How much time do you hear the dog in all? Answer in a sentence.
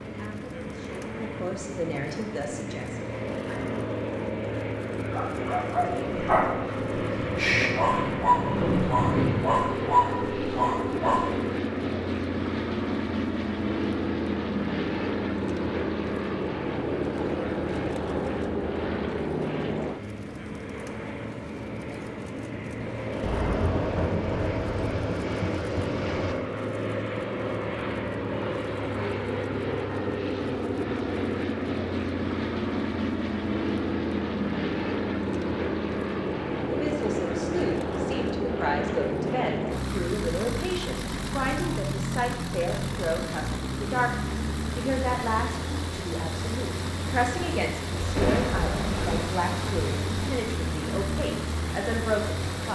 The dog can be heard for 6 seconds in total.